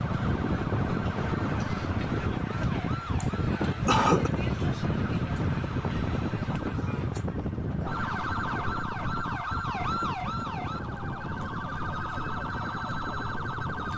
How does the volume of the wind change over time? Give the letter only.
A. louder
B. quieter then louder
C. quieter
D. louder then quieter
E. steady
C.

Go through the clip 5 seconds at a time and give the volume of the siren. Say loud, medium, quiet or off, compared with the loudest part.
medium, loud, loud.